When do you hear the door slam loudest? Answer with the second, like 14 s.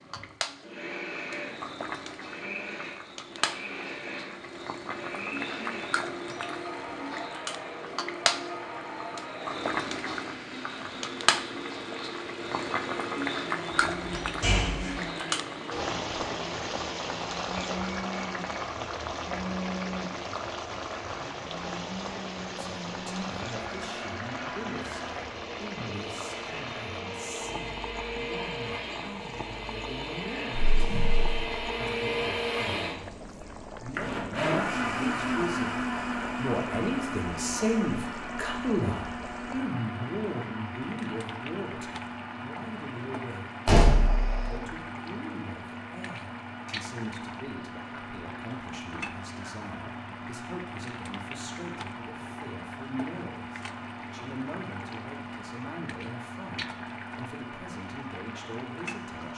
44 s.